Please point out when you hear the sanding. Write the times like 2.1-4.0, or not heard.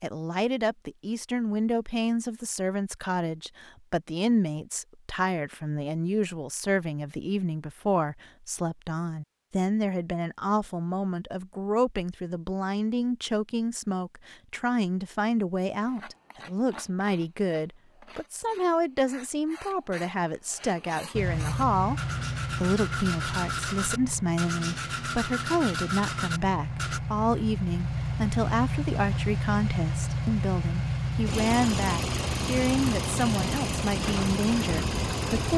15.8-27.0.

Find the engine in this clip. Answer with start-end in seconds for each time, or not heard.
21.1-35.5.